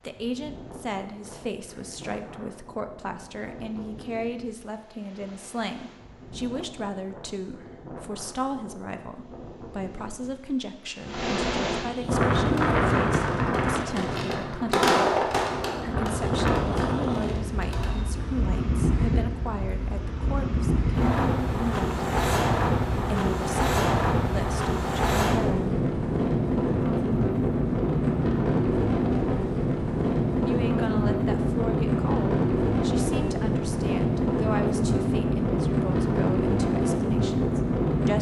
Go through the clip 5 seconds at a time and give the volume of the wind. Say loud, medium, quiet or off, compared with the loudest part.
quiet, quiet, loud, medium, loud, loud, loud, loud.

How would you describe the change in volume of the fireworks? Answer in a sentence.
The loudness of the fireworks goes up, then down.